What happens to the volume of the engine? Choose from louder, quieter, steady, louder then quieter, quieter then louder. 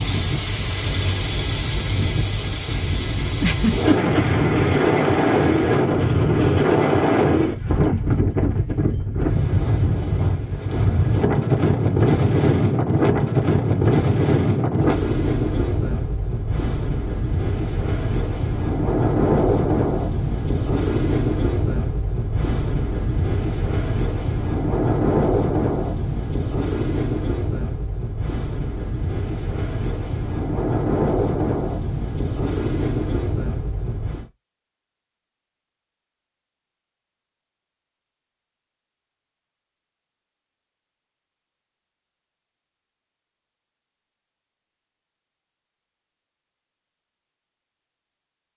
steady.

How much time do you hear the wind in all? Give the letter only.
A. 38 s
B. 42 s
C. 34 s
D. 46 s
C.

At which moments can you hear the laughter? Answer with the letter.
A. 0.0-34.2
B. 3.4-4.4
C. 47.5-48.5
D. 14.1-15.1
B.